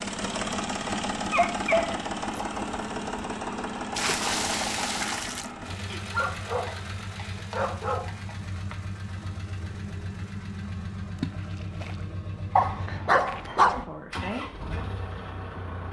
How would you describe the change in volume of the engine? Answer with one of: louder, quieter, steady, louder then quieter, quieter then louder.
quieter.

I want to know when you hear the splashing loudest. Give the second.
4 s.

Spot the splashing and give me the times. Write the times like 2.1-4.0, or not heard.
4.0-5.5, 11.2-12.1.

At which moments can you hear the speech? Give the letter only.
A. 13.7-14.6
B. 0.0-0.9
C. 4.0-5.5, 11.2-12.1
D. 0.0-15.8
A.